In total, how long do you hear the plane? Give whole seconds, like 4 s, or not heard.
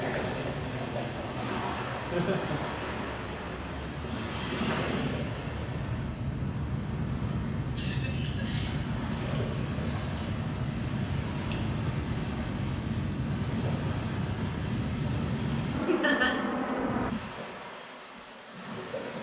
17 s.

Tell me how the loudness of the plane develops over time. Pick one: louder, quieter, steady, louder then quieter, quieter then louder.
louder.